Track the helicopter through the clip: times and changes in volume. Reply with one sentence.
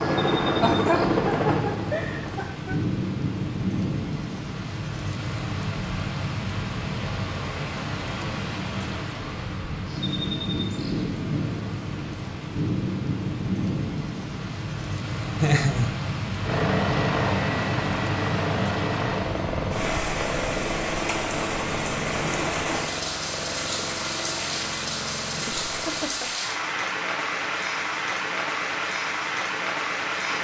The helicopter can be heard briefly from 0.0 to 2.5 s; and from 16.4 to 26.1 s, getting quieter.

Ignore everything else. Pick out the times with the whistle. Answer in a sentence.
You can't hear the whistle here.